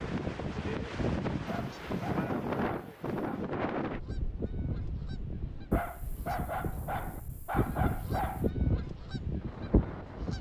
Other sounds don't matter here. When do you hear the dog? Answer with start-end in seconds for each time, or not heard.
1.4-3.5, 5.7-8.5.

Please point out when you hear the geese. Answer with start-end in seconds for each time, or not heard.
0.0-1.9, 3.8-10.3.